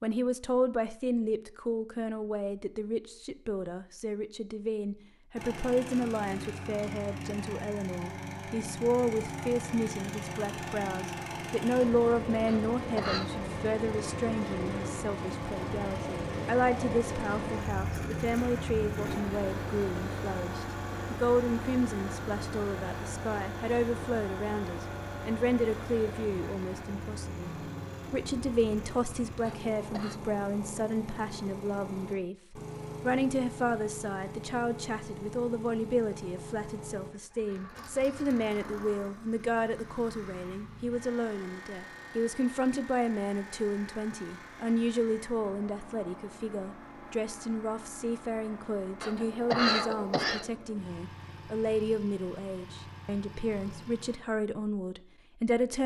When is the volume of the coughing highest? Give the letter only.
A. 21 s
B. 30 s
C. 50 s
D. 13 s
C.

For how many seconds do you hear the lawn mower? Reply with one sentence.
You can hear the lawn mower for 49 seconds altogether.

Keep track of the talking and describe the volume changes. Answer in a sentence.
The loudness of the talking stays about the same.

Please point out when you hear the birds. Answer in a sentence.
The birds can't be heard in this clip.